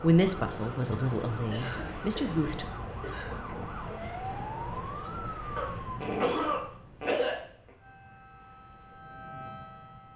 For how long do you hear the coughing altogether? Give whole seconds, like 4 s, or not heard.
4 s.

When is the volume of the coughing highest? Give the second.
6 s.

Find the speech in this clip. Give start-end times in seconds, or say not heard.
0.0-2.6.